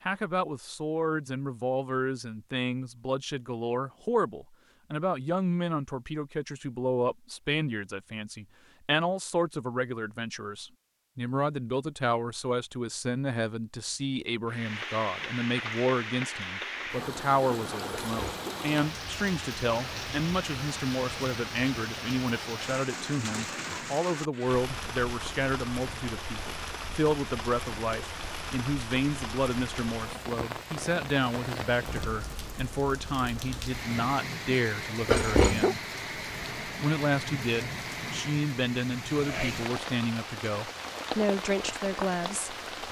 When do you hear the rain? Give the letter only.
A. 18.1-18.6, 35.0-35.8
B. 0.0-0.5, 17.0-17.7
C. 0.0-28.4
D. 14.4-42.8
D.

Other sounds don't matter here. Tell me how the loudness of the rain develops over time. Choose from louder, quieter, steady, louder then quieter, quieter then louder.
steady.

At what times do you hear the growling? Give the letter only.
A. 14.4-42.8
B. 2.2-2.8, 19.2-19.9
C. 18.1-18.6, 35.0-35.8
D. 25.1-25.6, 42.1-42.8
C.